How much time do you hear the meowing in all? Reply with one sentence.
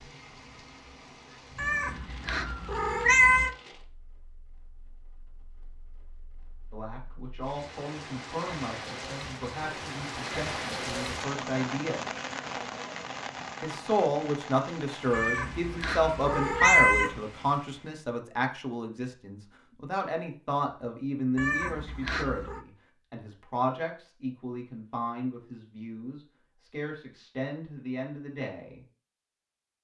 You can hear the meowing for 5 seconds altogether.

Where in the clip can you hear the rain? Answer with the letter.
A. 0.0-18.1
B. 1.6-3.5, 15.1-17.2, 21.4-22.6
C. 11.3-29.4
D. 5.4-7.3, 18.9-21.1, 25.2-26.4
A.